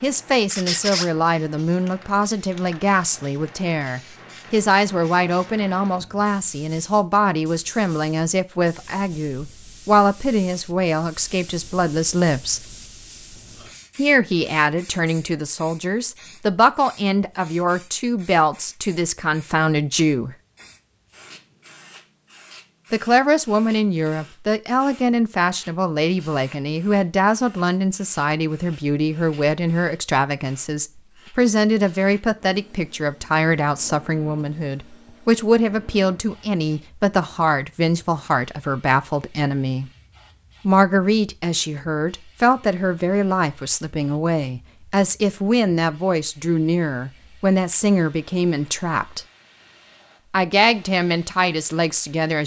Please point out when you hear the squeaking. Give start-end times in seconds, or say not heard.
0.5-1.1.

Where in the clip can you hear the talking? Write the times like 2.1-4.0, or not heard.
0.0-12.7, 13.9-20.4, 22.9-39.9, 40.6-49.2, 50.3-52.4.